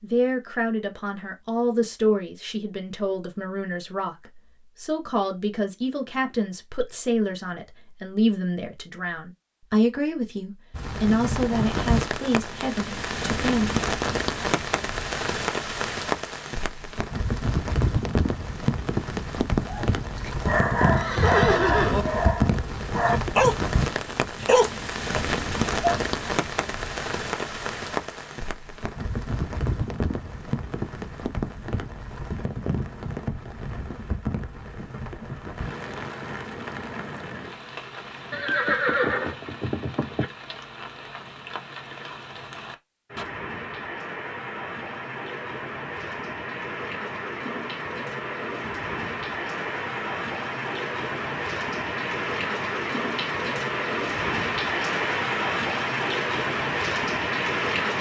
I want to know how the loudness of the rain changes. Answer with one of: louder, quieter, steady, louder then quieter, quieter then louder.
quieter then louder.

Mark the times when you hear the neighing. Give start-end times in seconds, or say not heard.
20.9-22.1, 38.3-40.2.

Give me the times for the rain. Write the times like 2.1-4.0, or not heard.
10.7-57.9.